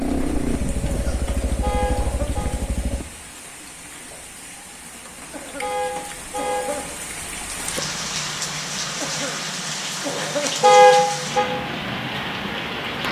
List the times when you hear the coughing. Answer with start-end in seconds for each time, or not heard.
0.8-2.3, 5.3-5.8, 6.3-6.9, 9.0-10.8.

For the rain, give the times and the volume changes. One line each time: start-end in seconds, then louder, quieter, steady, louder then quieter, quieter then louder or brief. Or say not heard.
0.0-13.0 louder.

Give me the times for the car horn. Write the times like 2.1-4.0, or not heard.
1.6-2.5, 5.6-6.7, 10.6-11.5.